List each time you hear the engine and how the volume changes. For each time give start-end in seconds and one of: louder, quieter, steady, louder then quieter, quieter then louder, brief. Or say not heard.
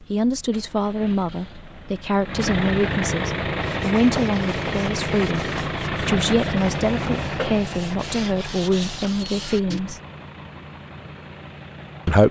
0.0-12.2 louder then quieter.